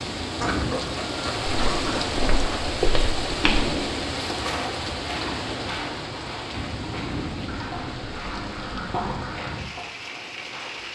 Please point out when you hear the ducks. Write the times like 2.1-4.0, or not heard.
0.3-2.5, 7.5-9.4.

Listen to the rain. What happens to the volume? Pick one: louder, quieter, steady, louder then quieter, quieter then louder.
quieter.